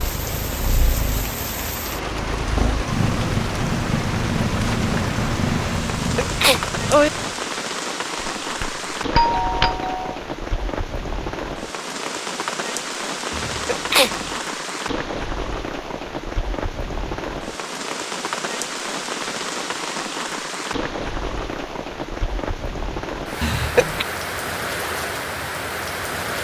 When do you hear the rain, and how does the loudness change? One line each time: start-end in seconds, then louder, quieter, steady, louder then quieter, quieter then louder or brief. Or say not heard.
0.0-26.3 steady.